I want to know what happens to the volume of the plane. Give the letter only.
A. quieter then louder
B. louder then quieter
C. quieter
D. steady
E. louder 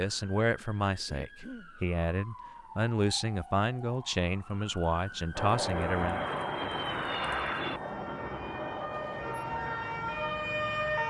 C.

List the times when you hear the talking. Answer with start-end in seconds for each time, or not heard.
0.0-6.2.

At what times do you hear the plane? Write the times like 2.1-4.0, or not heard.
5.3-11.0.